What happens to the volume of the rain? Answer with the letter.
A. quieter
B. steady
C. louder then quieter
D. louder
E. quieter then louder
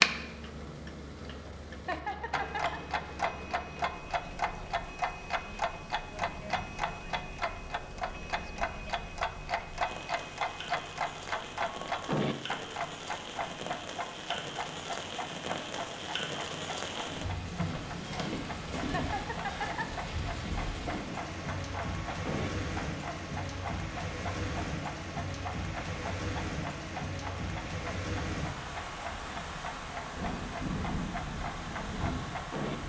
D.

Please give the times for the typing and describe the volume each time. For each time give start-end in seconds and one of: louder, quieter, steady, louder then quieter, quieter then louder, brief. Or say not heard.
not heard.